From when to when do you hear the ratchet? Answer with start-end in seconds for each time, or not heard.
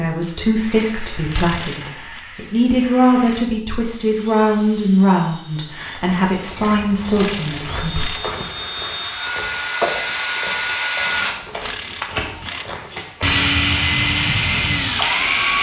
0.7-2.2, 6.5-8.2, 11.1-12.7.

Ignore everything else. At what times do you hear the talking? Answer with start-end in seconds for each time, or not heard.
0.0-8.1.